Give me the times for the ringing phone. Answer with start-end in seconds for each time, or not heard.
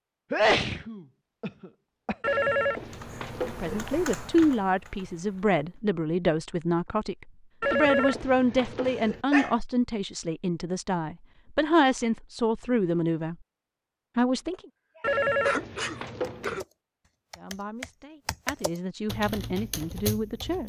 2.2-3.9, 7.6-9.2, 15.0-16.6.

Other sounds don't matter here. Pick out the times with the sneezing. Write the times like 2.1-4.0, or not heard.
0.3-2.1, 8.8-9.6, 15.4-16.6.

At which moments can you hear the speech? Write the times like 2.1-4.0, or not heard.
3.5-13.3, 14.2-14.6, 17.4-20.6.